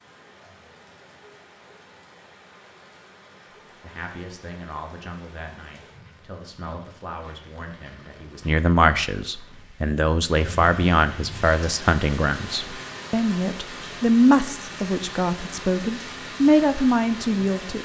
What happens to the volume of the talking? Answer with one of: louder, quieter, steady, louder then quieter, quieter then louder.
louder.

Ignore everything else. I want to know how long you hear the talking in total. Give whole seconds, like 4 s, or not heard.
14 s.